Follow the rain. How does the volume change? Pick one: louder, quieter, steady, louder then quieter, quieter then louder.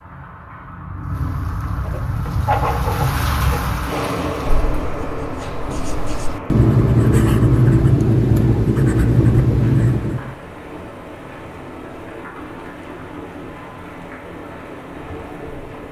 quieter.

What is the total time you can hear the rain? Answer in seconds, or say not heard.
16 s.